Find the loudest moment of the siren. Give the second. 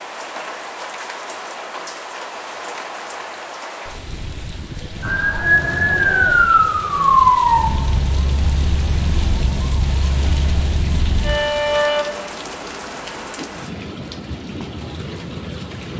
7 s.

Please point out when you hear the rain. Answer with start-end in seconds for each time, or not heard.
0.0-15.9.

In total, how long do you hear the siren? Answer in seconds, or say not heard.
7 s.